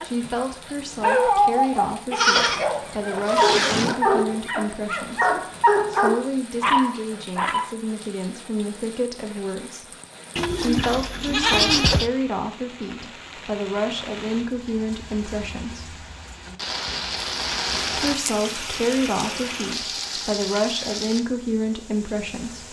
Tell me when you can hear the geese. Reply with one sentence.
The geese can't be heard in this clip.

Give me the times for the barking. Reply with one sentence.
The barking can be heard from 0.0 to 7.7 s.